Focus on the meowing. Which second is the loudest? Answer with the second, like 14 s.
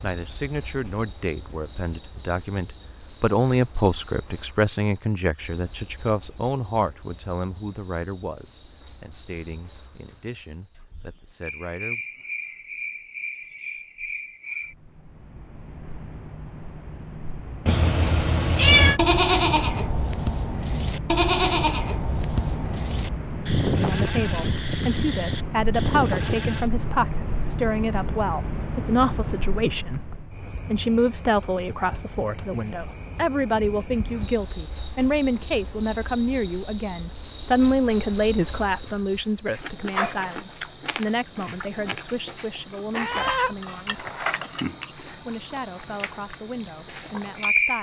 19 s.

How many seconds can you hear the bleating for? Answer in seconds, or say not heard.
8 s.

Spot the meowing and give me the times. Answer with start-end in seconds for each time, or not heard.
17.6-19.0, 42.9-43.5.